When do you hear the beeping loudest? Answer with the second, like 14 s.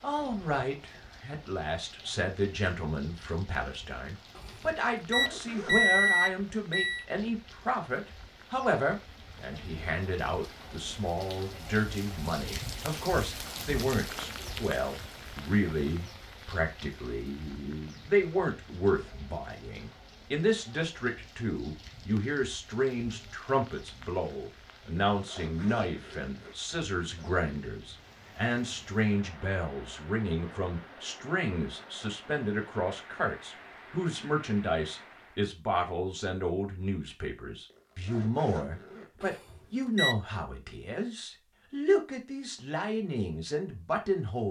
6 s.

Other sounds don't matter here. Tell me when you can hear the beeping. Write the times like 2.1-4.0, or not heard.
4.3-7.0, 39.2-40.1.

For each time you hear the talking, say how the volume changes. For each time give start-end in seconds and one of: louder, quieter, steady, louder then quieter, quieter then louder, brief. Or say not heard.
0.0-44.4 steady.